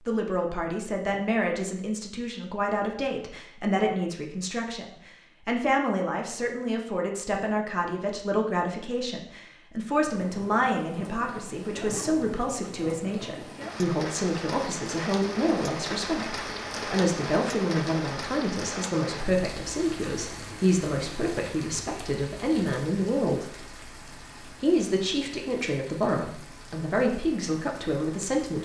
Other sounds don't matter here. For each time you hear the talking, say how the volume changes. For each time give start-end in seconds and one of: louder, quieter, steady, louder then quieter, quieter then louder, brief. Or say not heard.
0.1-28.6 steady.